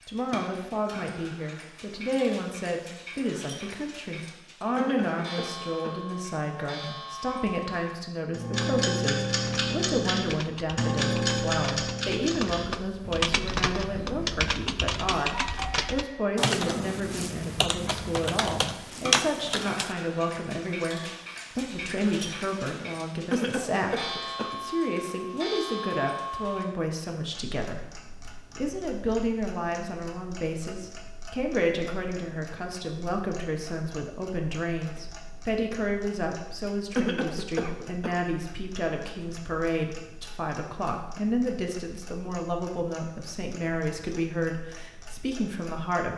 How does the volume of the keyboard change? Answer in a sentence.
The loudness of the keyboard goes up.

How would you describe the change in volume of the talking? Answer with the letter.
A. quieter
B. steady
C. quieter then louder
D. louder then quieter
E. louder
B.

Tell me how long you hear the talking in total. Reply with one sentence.
The talking can be heard for 46 seconds in total.